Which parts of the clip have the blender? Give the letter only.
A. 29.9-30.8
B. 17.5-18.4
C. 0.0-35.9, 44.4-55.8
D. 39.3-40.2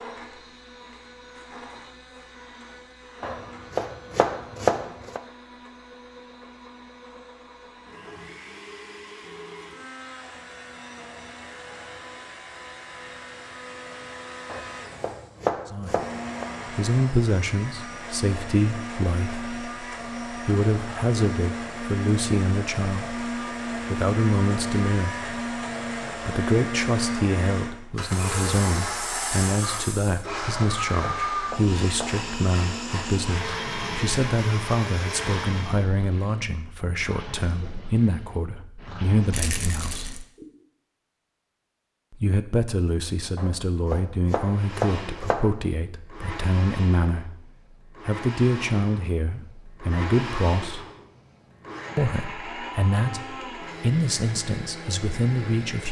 C.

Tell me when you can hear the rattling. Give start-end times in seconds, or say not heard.
39.3-40.2.